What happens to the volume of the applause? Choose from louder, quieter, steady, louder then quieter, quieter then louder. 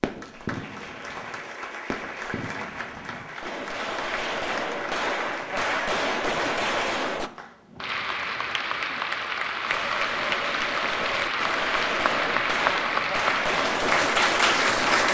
louder.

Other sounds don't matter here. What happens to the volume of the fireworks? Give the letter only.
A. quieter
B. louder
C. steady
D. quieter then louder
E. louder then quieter
B.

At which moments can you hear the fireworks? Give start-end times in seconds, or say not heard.
0.0-7.3, 9.7-15.0.